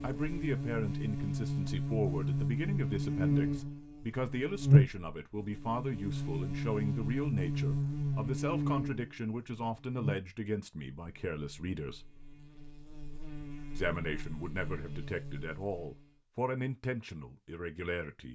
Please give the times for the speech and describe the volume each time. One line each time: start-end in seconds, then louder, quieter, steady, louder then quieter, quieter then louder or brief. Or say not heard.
0.0-12.1 steady
13.8-18.2 louder then quieter.